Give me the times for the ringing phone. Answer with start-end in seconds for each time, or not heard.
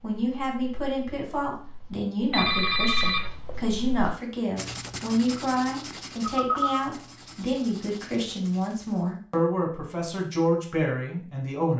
2.3-3.3, 6.2-6.8.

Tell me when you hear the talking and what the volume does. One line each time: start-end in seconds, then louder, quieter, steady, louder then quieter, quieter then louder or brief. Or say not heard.
0.0-11.7 steady.